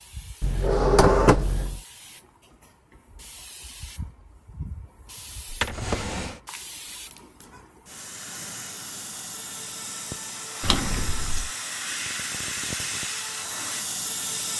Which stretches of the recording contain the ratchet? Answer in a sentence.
The ratchet can't be heard in this clip.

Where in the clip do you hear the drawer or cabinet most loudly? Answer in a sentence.
The loudest moment of the drawer or cabinet is at 1 second.